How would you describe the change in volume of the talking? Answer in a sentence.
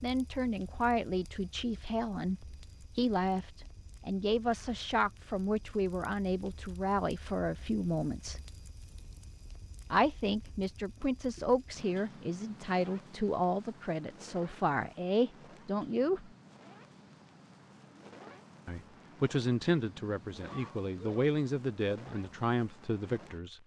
The loudness of the talking stays about the same.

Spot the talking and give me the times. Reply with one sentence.
You can hear the talking from 0.0 to 8.4 s, from 9.9 to 16.3 s and from 18.6 to 23.6 s.